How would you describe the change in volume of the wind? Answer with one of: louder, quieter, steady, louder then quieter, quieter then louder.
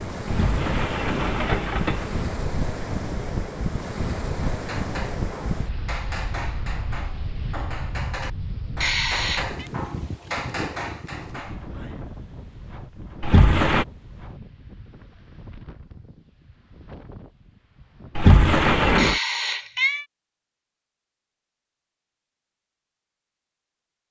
quieter.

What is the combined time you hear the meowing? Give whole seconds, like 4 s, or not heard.
2 s.